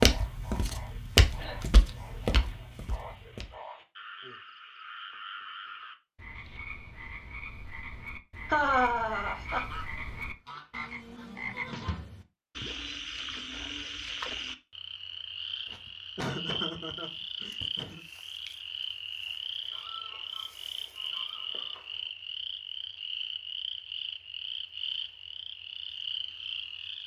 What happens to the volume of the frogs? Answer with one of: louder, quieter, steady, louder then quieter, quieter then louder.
louder.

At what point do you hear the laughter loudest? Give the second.
9 s.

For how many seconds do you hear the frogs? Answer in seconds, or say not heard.
27 s.